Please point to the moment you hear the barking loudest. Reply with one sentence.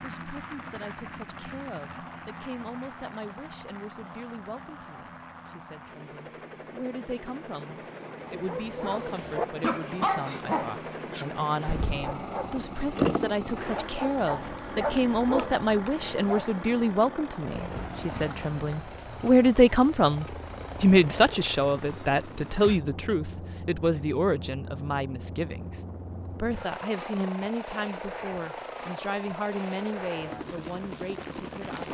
The loudest moment of the barking is at 13 seconds.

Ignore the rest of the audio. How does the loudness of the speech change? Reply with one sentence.
The volume of the speech goes up, then down.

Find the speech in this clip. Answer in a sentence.
The speech can be heard from 0.0 to 31.9 s.